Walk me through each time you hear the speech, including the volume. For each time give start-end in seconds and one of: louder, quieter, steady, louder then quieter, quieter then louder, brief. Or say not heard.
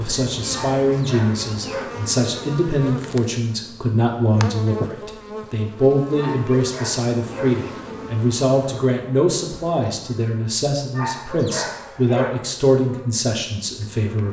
0.0-14.2 steady.